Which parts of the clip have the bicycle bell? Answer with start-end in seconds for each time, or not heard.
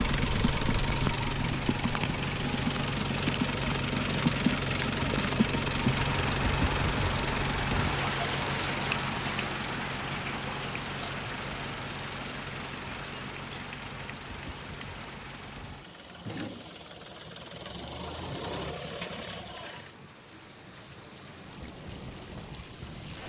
not heard.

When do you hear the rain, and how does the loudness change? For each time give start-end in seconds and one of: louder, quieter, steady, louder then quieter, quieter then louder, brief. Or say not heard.
0.0-23.2 quieter.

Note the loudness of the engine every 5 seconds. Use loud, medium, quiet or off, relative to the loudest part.
loud, loud, medium, medium, off.